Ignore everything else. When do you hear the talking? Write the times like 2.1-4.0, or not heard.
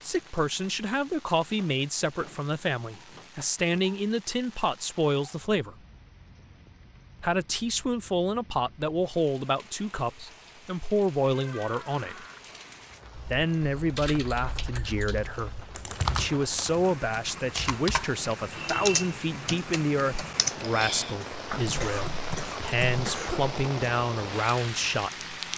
0.0-5.8, 7.2-12.2, 13.3-25.1.